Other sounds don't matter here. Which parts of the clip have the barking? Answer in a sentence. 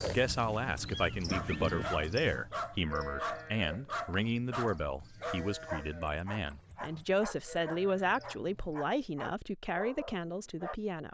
You can hear the barking from 1.2 to 10.8 s.